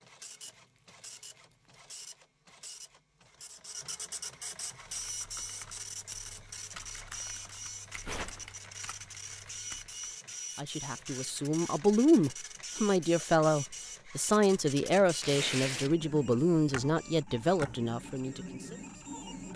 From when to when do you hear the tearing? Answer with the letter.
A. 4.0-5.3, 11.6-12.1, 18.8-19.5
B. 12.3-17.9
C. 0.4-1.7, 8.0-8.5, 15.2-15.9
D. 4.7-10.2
C.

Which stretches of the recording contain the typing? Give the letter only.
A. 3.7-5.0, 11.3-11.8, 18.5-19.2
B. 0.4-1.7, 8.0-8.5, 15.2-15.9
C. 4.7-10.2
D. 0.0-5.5
C.